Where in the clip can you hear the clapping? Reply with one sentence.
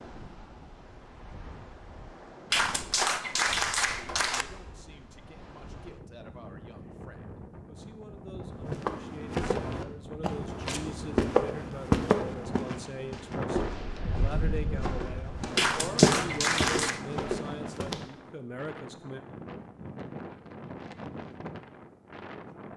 The clapping can be heard from 2.5 to 4.5 s and from 15.6 to 17.0 s.